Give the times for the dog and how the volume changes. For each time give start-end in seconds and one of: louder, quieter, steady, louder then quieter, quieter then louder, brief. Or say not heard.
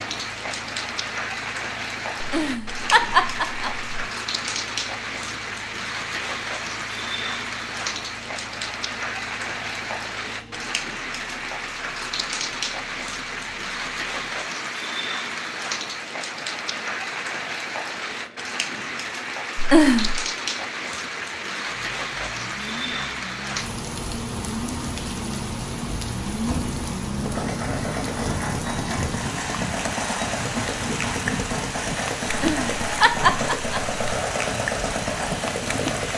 not heard.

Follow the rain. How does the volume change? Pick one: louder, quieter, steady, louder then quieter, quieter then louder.
steady.